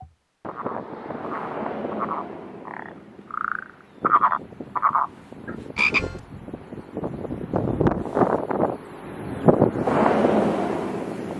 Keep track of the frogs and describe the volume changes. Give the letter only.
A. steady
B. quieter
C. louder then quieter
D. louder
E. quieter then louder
D.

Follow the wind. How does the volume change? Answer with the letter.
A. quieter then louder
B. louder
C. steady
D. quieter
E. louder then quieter
A.